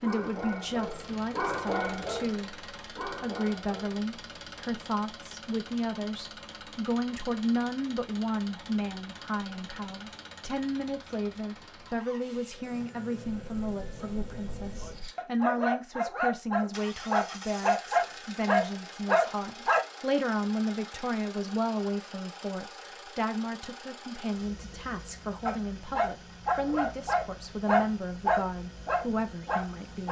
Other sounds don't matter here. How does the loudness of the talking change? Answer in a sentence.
The loudness of the talking stays about the same.